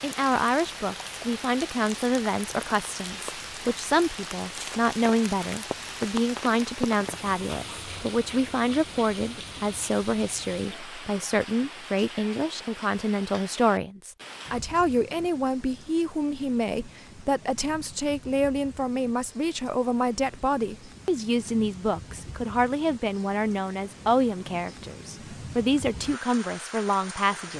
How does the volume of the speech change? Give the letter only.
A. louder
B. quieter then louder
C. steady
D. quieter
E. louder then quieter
C.